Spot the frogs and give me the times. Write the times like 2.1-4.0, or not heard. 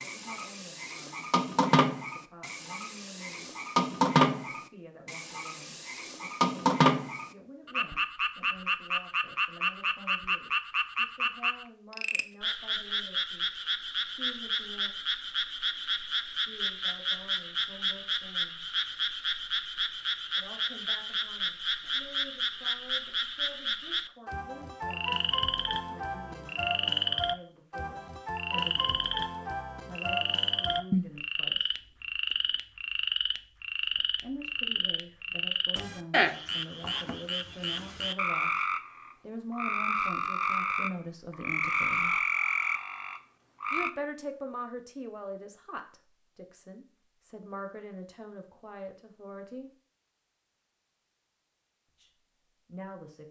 0.0-43.9.